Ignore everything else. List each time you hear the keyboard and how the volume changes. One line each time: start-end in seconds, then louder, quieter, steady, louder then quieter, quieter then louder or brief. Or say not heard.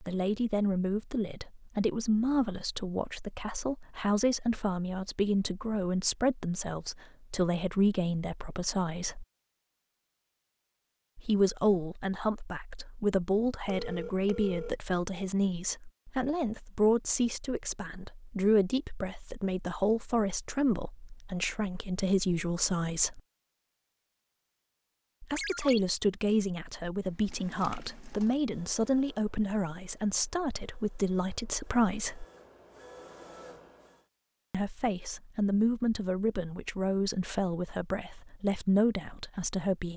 not heard.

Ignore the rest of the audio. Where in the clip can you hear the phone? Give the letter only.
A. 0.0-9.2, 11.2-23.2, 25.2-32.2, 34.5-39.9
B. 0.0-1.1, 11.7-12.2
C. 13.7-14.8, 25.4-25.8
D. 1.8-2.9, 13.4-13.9
C.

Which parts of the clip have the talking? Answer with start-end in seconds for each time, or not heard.
0.0-9.2, 11.2-23.2, 25.2-32.2, 34.5-39.9.